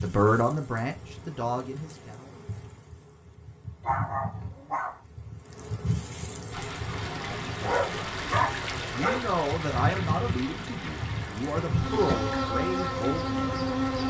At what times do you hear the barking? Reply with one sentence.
You can hear the barking from 3.8 to 5.0 s and from 7.6 to 9.2 s.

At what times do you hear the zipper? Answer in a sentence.
The zipper can't be heard in this clip.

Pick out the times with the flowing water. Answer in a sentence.
The flowing water can be heard from 6.5 to 14.0 s.